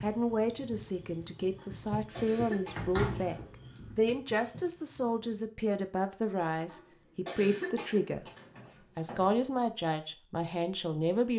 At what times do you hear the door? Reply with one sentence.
You can hear the door from 2.8 to 4.2 s and from 8.2 to 9.7 s.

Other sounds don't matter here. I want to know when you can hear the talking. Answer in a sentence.
The talking can be heard from 0.0 to 3.4 s, from 4.0 to 8.2 s and from 8.9 to 11.3 s.